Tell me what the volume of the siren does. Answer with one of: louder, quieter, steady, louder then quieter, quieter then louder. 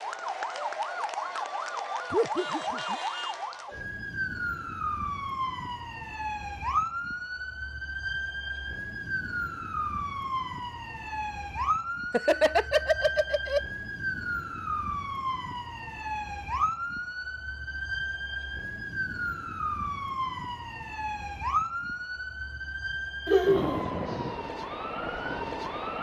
steady.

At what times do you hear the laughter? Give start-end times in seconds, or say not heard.
2.1-3.0, 12.1-13.6, 23.2-23.8.